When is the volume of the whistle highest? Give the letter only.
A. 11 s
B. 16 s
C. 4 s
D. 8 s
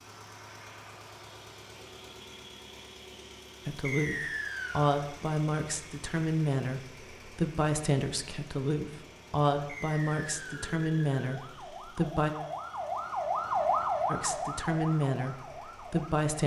C.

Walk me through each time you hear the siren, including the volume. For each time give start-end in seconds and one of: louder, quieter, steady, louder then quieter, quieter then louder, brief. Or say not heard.
10.6-16.2 louder then quieter.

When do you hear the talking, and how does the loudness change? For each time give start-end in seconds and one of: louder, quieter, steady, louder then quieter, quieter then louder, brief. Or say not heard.
3.6-12.3 steady
14.1-16.4 brief.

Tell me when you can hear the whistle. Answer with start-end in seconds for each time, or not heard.
3.9-5.0, 9.7-10.7.